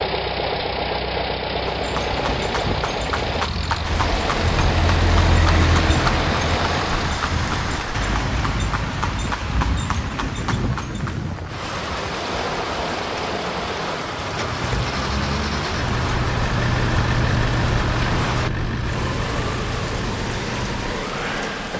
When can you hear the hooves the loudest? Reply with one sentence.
The volume of the hooves peaks at 6 seconds.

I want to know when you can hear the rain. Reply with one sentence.
The rain can be heard from 3.8 to 21.7 s.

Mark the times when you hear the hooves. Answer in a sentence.
The hooves can be heard from 1.6 to 11.2 s.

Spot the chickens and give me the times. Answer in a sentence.
The chickens can't be heard in this clip.